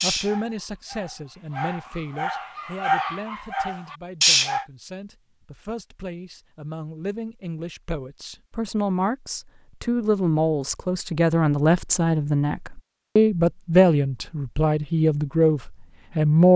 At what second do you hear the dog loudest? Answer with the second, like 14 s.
4 s.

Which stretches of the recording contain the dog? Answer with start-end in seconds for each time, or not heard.
0.0-4.7.